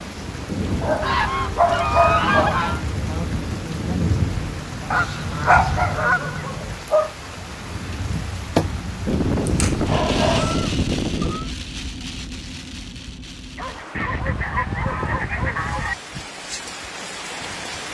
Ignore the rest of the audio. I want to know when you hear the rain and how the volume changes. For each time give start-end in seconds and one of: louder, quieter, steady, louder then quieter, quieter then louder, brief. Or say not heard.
0.0-17.8 quieter.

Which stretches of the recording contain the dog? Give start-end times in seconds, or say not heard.
0.8-2.6, 4.9-7.1, 9.4-10.8, 13.6-15.9.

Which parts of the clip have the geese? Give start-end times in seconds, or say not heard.
1.0-2.8, 4.9-6.5, 9.1-11.5, 13.9-15.9.